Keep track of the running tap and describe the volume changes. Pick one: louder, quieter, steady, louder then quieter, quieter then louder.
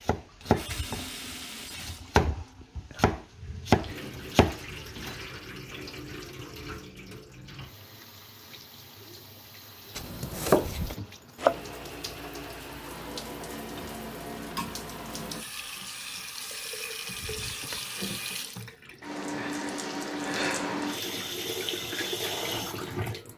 louder.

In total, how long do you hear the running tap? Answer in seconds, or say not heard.
23 s.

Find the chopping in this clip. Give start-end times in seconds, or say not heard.
0.0-5.2, 9.9-11.6.